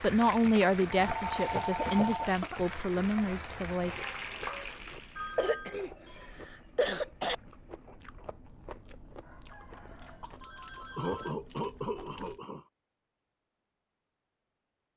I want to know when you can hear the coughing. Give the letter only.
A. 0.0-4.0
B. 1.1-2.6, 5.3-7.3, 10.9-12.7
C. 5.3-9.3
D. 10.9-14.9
B.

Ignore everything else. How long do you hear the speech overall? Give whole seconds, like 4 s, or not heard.
4 s.